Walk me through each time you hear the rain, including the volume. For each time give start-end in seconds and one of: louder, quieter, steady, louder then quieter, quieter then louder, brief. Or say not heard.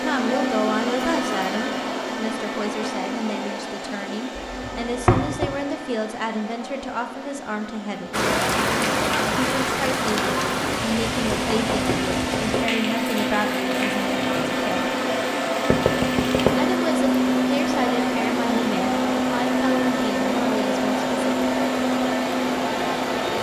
8.1-23.3 quieter.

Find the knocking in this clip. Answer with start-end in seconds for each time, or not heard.
4.3-5.5, 11.2-12.7, 15.7-16.5.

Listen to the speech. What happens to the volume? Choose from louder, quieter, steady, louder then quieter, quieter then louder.
steady.